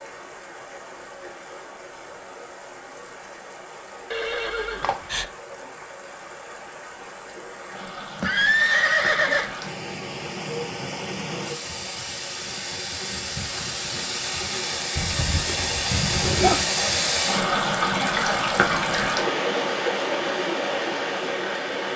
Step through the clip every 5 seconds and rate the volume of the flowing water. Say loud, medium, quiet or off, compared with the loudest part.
quiet, quiet, medium, loud, loud.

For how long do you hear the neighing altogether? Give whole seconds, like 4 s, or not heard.
4 s.